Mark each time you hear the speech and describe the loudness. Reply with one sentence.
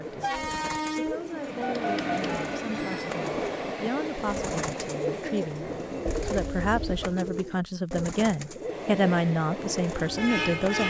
You can hear the speech from 0.0 to 10.8 s, getting louder.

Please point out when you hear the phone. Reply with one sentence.
The phone can be heard from 1.6 to 3.1 s and from 6.0 to 7.2 s.